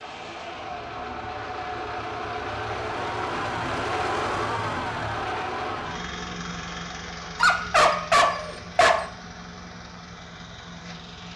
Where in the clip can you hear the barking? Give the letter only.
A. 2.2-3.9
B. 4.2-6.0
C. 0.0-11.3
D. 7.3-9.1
D.